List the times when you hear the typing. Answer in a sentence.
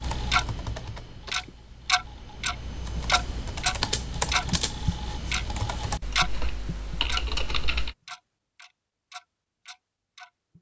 The typing can be heard from 0.0 to 8.0 s.